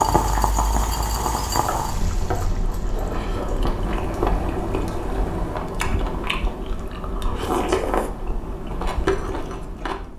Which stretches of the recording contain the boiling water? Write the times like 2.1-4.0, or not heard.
0.0-5.6.